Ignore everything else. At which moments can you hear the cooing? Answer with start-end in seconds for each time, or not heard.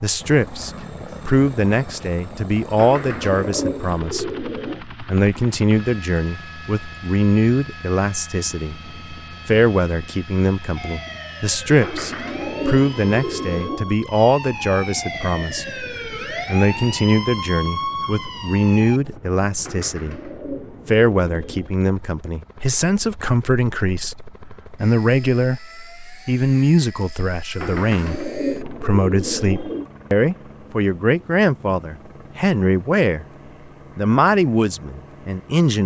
2.8-4.8, 11.8-13.9, 19.6-21.8, 27.6-29.9.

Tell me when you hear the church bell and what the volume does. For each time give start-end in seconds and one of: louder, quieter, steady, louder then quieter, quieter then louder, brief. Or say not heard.
not heard.